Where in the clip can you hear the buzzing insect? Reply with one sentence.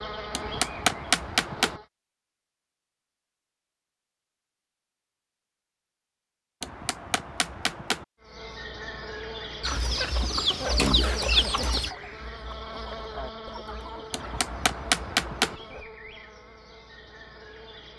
You can hear the buzzing insect from 0.0 to 1.9 s and from 8.2 to 17.9 s.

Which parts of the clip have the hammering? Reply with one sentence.
You can hear the hammering from 0.3 to 1.8 s, from 6.6 to 8.1 s and from 14.1 to 15.6 s.